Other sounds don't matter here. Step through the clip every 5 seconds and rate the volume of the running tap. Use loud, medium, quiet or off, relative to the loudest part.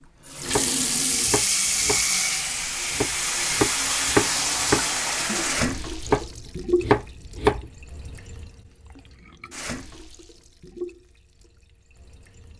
loud, medium, quiet.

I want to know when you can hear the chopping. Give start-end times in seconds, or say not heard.
0.5-2.0, 2.9-7.7.